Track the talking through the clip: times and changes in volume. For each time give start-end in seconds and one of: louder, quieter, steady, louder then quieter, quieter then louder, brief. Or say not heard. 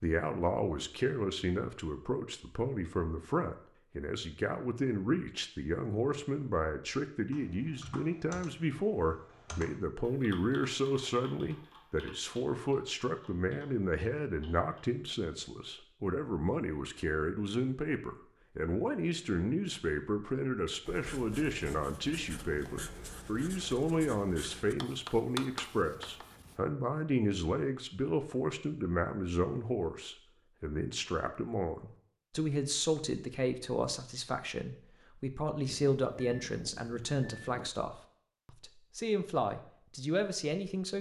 0.0-40.9 steady.